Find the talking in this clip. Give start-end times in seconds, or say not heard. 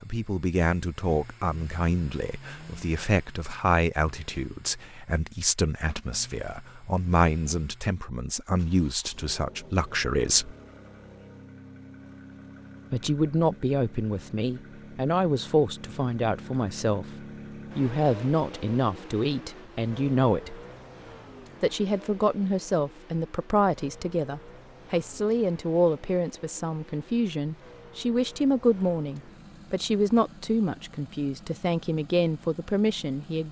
0.0-10.6, 12.9-17.1, 17.8-20.6, 21.6-33.4.